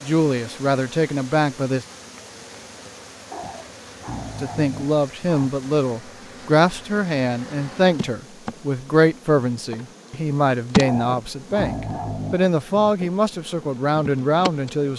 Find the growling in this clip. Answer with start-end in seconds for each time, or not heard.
3.3-5.5, 10.8-12.4.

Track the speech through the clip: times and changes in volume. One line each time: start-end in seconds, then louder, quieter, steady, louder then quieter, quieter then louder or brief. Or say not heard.
0.0-1.9 brief
4.4-14.9 steady.